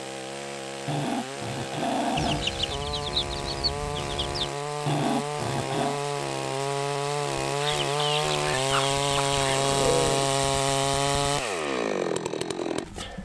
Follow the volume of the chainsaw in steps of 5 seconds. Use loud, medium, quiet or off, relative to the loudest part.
medium, loud, loud.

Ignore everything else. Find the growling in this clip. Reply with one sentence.
The growling can be heard from 0.8 to 2.5 s, from 4.8 to 6.0 s and from 9.4 to 10.3 s.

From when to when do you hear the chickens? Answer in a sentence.
The chickens can be heard from 2.1 to 4.5 s and from 7.6 to 9.6 s.